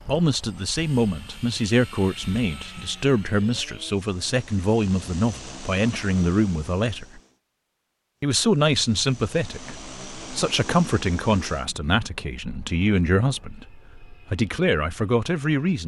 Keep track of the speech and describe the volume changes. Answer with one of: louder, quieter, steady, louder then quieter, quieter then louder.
steady.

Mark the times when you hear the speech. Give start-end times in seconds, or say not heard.
0.1-7.2, 8.2-15.8.